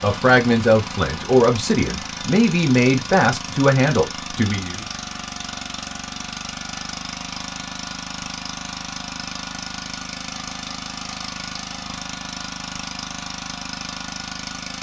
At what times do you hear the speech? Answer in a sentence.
You can hear the speech from 0.0 to 4.8 s.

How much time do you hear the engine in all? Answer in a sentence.
You can hear the engine for 15 seconds altogether.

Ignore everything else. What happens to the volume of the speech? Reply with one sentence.
The volume of the speech stays about the same.